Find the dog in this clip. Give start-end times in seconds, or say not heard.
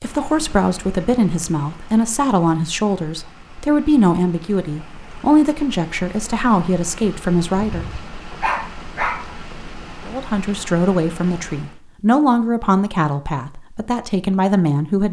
7.5-9.3.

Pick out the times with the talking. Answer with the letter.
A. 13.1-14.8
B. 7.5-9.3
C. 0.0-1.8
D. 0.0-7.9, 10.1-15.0
D.